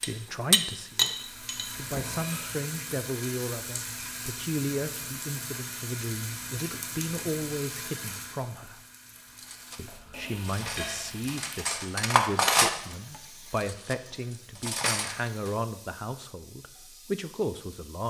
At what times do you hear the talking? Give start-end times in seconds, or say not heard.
0.0-8.8, 9.8-18.0.